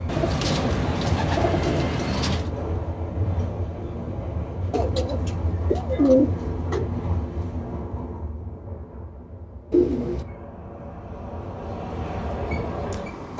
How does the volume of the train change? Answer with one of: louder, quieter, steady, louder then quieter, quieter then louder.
quieter then louder.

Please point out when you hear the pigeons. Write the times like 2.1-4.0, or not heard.
0.1-2.5, 4.7-6.9, 9.7-10.2.